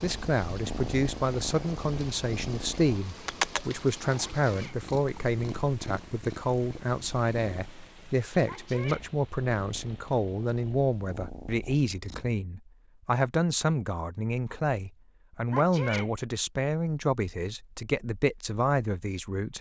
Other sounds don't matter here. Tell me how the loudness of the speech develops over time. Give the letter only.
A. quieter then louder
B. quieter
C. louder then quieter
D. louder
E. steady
E.